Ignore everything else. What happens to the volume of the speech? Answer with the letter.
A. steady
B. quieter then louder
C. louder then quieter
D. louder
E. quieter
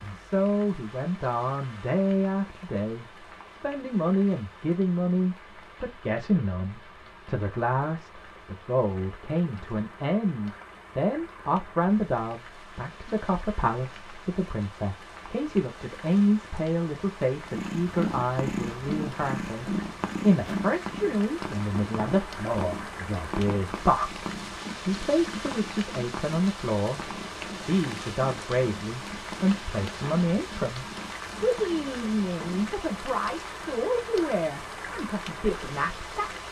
A.